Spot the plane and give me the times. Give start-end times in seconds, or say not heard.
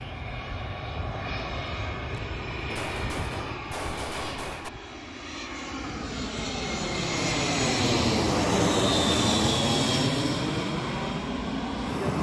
0.0-12.1.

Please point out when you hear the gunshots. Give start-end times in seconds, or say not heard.
2.7-4.7.